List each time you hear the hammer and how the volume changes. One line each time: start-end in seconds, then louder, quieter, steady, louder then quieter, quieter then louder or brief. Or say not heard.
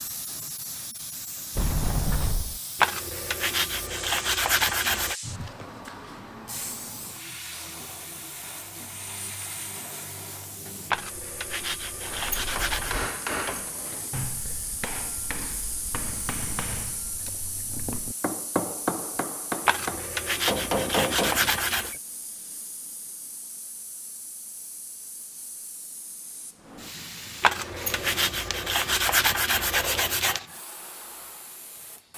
12.1-22.0 quieter then louder.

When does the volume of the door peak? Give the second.
2 s.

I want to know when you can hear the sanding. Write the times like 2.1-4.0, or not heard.
2.8-5.2, 10.9-13.1, 19.6-21.9, 27.4-30.4.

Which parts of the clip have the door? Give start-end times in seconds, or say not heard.
1.6-2.6, 12.0-14.1, 27.6-28.5.